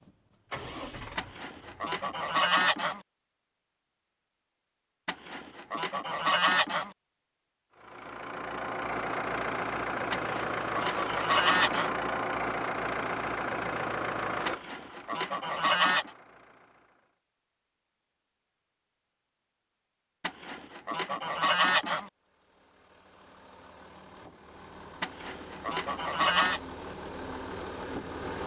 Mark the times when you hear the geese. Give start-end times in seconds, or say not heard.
1.1-3.0, 5.0-6.9, 10.1-11.9, 14.4-16.1, 20.2-22.1, 25.0-26.6.